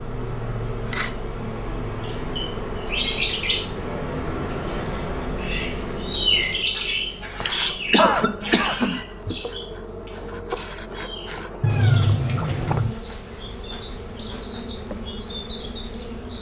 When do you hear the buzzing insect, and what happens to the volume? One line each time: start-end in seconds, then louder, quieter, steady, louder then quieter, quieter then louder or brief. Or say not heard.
0.0-16.3 steady.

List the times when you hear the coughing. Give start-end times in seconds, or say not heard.
6.8-9.0.